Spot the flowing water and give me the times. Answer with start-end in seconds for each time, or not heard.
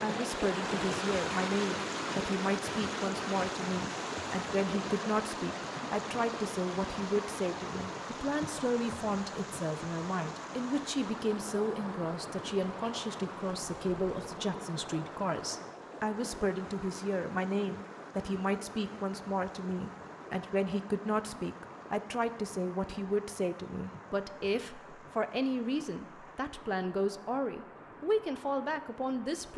0.0-29.5.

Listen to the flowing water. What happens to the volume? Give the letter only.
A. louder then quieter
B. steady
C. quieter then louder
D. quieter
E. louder
D.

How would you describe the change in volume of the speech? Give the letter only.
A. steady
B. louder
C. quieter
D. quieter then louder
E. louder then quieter
A.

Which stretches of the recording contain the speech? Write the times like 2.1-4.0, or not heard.
0.0-29.5.